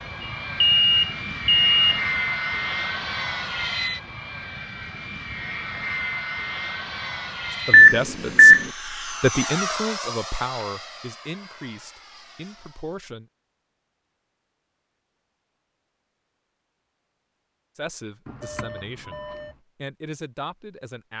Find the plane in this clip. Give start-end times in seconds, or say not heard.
0.0-12.9.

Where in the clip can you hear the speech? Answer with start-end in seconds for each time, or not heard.
7.5-13.2, 17.8-21.1.